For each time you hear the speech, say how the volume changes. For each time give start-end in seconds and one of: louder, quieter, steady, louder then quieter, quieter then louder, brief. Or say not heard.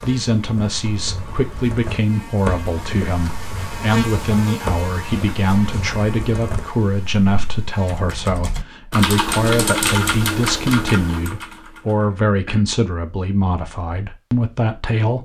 0.0-15.2 steady.